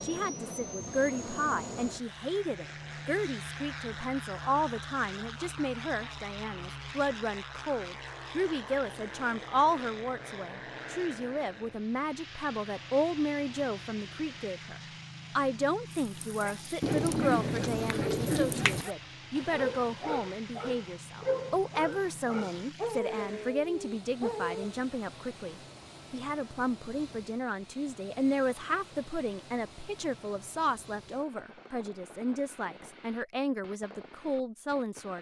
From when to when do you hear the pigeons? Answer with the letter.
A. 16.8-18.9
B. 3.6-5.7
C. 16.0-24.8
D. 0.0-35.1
A.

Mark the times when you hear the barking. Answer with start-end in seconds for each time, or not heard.
16.0-24.8.